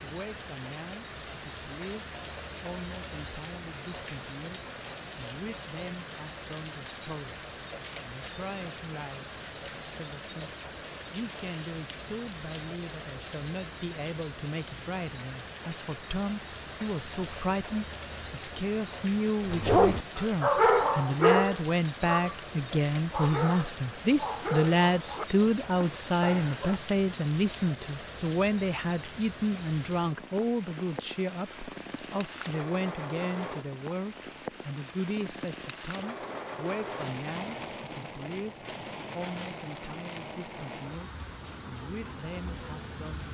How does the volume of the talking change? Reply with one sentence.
The volume of the talking goes up, then down.